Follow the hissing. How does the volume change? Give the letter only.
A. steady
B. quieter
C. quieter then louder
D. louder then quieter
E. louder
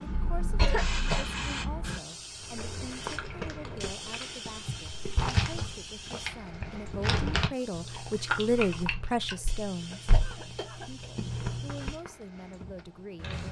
B.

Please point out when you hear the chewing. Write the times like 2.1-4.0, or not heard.
2.4-12.1.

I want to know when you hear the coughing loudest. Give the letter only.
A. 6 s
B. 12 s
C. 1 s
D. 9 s
C.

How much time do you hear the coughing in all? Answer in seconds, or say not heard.
3 s.